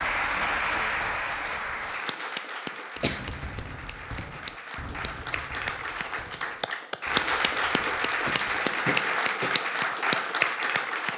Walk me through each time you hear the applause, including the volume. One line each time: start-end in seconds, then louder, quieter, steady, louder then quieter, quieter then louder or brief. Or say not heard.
0.0-11.1 quieter then louder.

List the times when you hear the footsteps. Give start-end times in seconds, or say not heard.
not heard.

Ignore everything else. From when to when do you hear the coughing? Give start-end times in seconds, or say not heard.
3.0-3.5, 8.2-9.7.